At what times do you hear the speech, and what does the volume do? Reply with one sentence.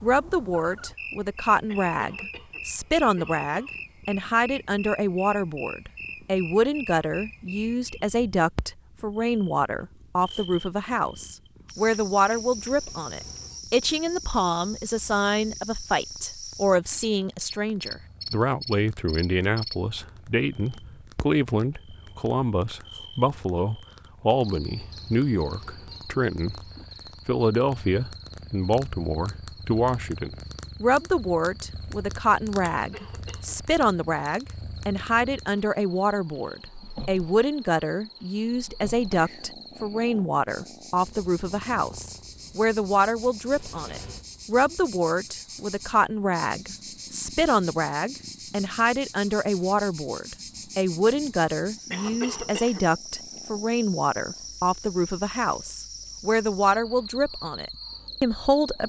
The speech can be heard from 0.0 to 26.6 s, at a steady volume; and from 27.2 to 58.8 s, at a steady volume.